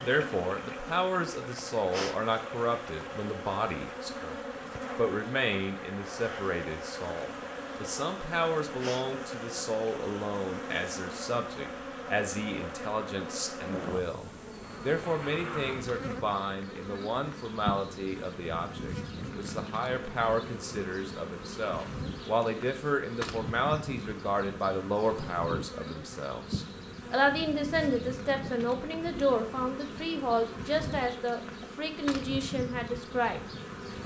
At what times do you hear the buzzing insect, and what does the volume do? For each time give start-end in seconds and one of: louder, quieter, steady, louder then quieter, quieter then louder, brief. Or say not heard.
0.0-34.0 steady.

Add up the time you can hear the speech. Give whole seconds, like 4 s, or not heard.
33 s.